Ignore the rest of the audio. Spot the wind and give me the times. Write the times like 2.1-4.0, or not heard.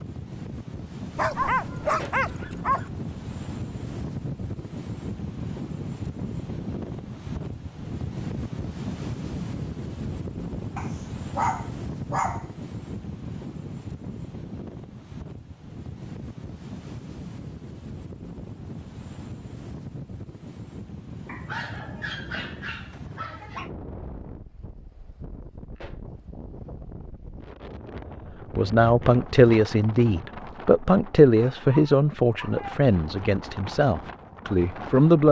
0.0-35.2.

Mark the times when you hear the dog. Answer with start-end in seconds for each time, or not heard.
1.1-2.9, 10.8-12.4, 21.2-23.7, 31.4-32.9.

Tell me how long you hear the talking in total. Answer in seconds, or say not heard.
7 s.